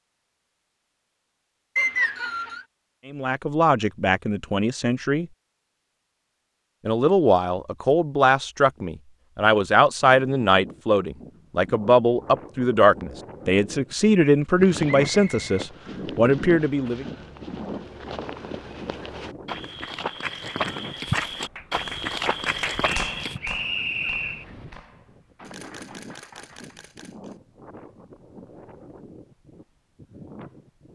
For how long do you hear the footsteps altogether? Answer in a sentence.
You can hear the footsteps for 9 seconds altogether.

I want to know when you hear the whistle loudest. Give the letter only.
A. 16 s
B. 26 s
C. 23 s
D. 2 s
D.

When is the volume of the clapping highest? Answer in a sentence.
The loudest moment of the clapping is at 23 seconds.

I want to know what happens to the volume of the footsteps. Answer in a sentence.
The loudness of the footsteps goes up.